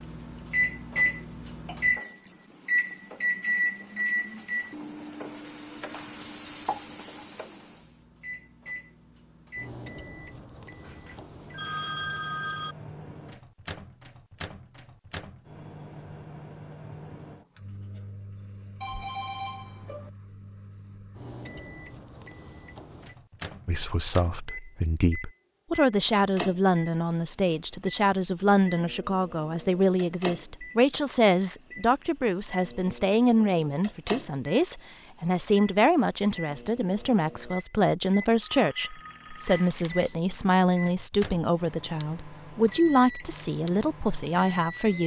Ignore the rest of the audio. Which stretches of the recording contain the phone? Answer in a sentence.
The phone can be heard from 10.8 to 12.8 s, from 18.8 to 20.1 s and from 38.4 to 39.6 s.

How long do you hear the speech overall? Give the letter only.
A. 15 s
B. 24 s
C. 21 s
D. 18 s
C.